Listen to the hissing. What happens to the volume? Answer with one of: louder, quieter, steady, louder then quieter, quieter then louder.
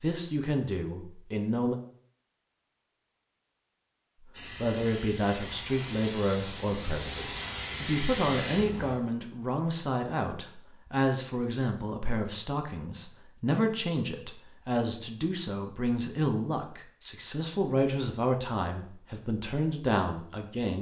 louder.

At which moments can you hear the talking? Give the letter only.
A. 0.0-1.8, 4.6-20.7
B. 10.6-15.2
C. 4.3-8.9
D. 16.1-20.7
A.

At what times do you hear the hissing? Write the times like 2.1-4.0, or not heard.
4.3-8.9.